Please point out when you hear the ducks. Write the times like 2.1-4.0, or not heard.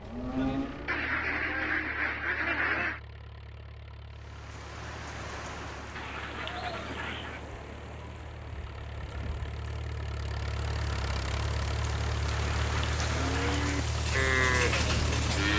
0.8-3.0, 6.0-7.4, 12.3-13.8.